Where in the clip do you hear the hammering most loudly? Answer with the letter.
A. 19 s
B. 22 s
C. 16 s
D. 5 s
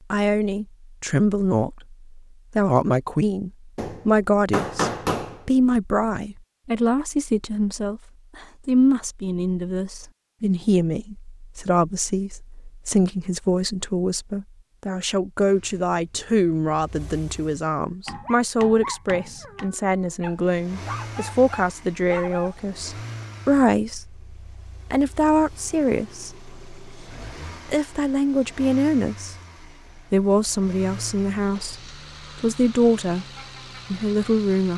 D.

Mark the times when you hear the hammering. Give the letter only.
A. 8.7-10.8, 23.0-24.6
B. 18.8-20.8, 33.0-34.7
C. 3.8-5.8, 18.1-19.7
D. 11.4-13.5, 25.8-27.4
C.